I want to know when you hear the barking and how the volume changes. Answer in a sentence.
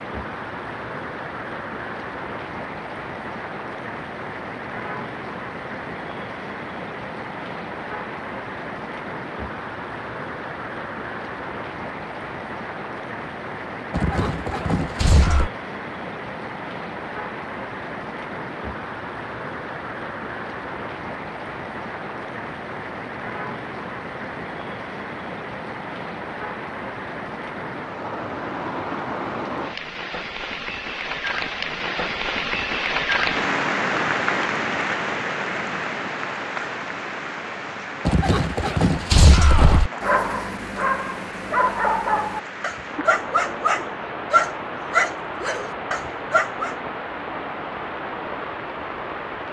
You can hear the barking from 40.0 to 46.8 s, getting louder then quieter.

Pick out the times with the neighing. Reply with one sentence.
You can hear the neighing from 13.9 to 15.5 s and from 38.0 to 39.9 s.